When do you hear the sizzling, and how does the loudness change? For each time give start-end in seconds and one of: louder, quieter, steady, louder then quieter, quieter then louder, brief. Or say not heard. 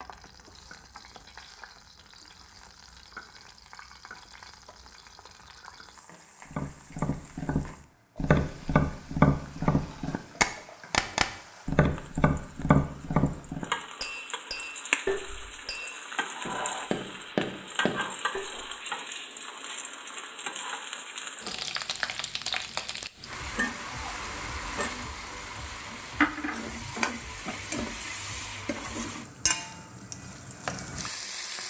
0.0-31.6 louder.